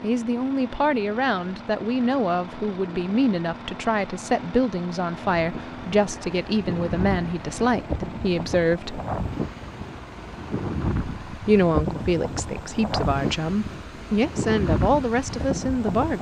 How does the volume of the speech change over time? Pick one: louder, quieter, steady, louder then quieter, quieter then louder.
steady.